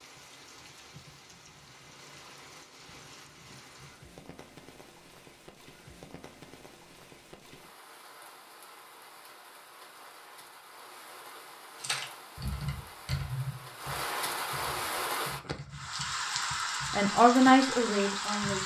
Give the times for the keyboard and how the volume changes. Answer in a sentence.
You can hear the keyboard from 11.8 to 17.5 s, getting quieter.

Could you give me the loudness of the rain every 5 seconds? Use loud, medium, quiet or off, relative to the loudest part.
quiet, quiet, medium, loud.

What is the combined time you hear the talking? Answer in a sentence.
You can hear the talking for 2 seconds altogether.